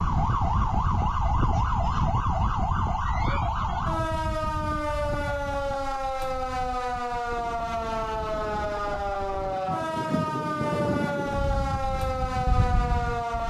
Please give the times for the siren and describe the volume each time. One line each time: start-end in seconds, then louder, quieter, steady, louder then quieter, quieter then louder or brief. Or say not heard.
0.0-13.4 steady.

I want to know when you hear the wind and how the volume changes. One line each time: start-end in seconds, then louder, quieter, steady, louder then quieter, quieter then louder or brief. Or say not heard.
0.0-13.4 quieter then louder.